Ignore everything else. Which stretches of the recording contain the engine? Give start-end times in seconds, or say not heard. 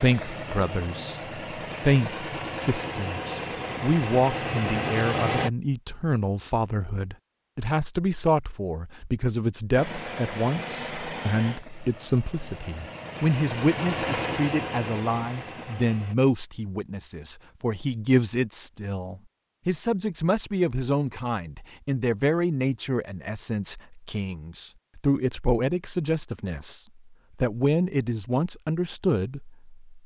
0.0-5.5, 9.8-16.1.